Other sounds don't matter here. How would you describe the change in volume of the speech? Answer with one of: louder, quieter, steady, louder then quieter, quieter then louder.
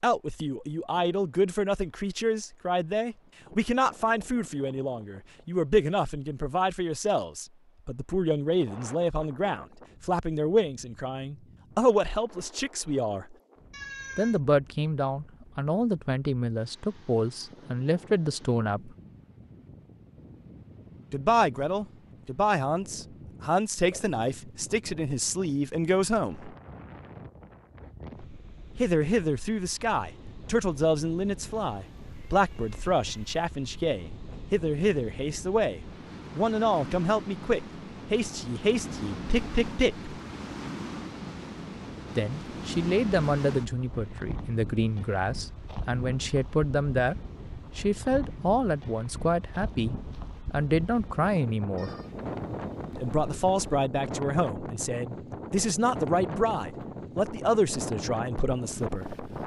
steady.